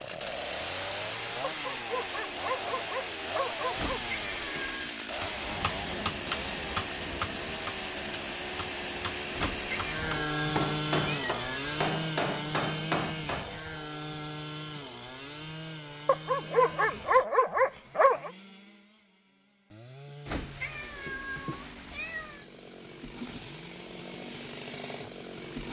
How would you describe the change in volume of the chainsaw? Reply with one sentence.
The loudness of the chainsaw goes down.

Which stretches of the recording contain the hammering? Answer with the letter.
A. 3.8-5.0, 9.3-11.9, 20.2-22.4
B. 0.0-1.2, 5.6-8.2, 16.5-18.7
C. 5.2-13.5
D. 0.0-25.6
C.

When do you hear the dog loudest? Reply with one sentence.
The loudest moment of the dog is at 17 seconds.